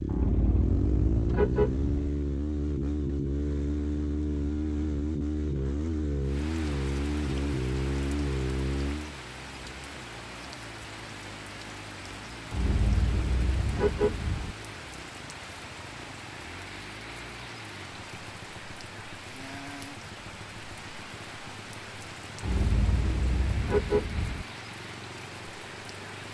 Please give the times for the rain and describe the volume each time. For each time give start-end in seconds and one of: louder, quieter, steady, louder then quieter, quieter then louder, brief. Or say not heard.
6.2-26.2 steady.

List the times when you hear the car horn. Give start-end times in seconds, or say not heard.
0.1-2.1, 12.5-14.6, 22.4-24.4.